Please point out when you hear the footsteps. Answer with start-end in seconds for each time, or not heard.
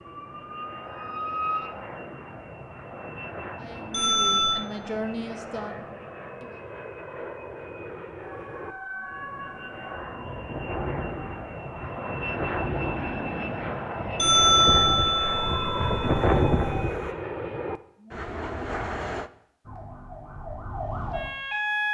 not heard.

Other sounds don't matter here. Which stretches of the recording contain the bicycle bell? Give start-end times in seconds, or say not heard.
3.9-4.6, 14.2-16.7.